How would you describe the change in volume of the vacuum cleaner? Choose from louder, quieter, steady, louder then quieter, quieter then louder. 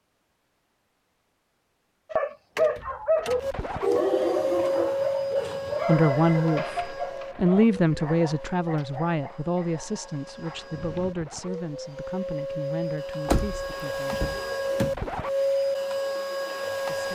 quieter then louder.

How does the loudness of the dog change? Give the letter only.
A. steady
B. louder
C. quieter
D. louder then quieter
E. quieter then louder
C.